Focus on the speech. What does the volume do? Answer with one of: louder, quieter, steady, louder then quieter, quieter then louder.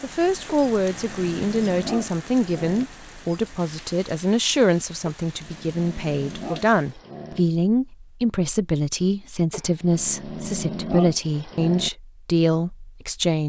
steady.